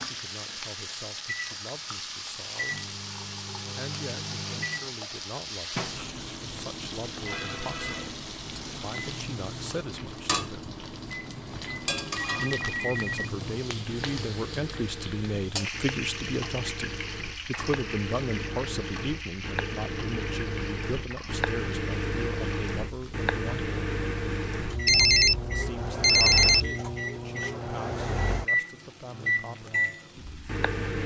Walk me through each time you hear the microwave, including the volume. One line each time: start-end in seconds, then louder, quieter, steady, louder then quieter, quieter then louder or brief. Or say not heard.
0.0-31.0 louder.